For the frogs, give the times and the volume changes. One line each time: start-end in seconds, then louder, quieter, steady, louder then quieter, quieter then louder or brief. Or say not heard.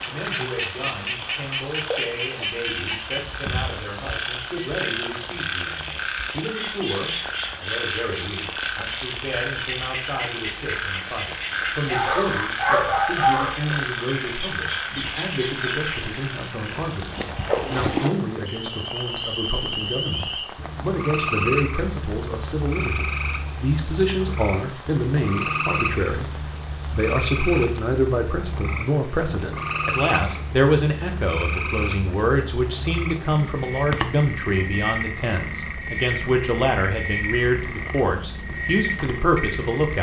0.0-39.9 steady.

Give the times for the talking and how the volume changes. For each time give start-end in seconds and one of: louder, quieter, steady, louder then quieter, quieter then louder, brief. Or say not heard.
0.0-39.9 louder.